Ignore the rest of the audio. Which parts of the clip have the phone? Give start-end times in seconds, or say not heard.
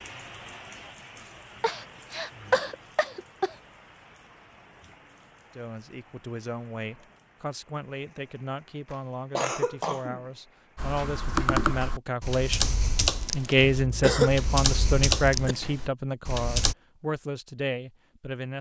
not heard.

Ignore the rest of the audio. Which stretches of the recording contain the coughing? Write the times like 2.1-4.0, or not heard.
1.6-3.5, 8.9-10.2, 13.7-15.6.